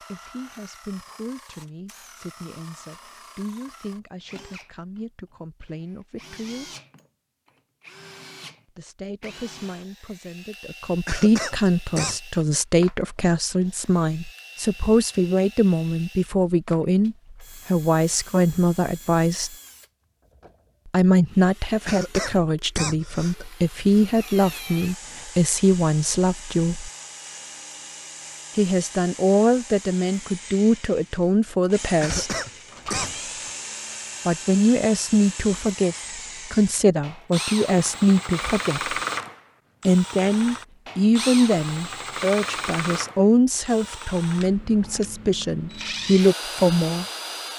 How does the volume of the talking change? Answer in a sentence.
The loudness of the talking goes up.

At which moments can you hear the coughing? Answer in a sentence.
You can hear the coughing from 11.1 to 12.2 s, from 21.9 to 23.4 s and from 32.0 to 33.2 s.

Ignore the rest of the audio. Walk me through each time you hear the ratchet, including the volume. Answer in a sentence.
You can't hear the ratchet here.